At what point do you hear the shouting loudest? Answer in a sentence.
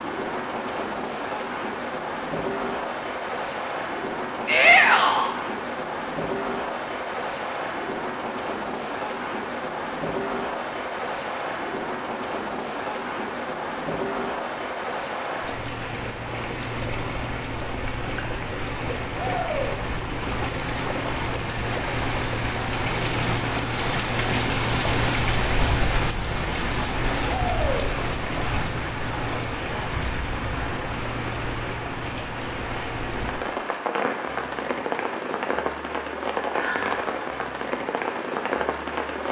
The loudest moment of the shouting is at 5 seconds.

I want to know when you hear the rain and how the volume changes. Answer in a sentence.
You can hear the rain from 0.0 to 39.2 s, at a steady volume.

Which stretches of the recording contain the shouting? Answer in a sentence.
The shouting can be heard from 4.5 to 5.3 s, from 19.1 to 19.8 s and from 27.3 to 27.9 s.